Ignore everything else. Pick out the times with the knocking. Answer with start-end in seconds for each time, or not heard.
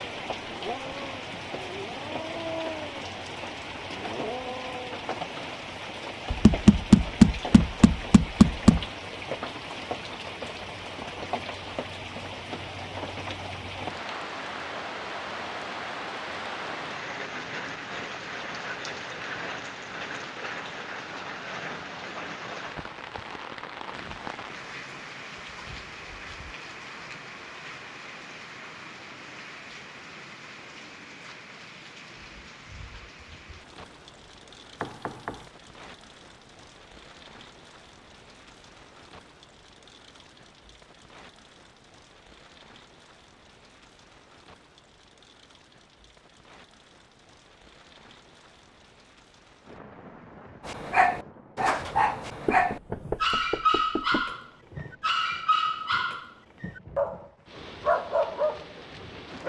6.3-8.8, 34.8-35.5, 52.5-54.2.